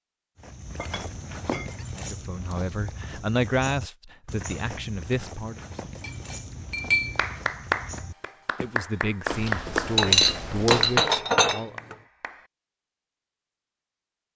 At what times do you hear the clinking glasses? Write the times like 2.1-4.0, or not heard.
0.8-1.8, 5.8-7.2, 9.9-11.9.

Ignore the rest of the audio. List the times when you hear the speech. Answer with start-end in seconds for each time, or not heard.
1.9-5.6, 8.6-11.8.